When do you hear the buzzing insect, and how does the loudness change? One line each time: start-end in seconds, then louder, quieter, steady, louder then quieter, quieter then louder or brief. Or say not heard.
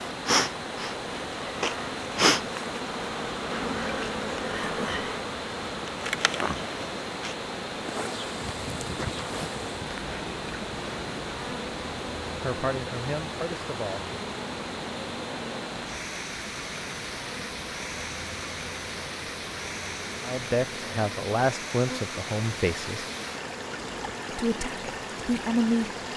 0.0-26.1 quieter.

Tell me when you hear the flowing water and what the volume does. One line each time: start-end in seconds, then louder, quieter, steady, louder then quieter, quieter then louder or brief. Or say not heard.
0.0-26.1 steady.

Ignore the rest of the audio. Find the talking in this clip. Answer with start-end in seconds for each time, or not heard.
12.4-14.2, 20.2-23.1, 24.3-25.9.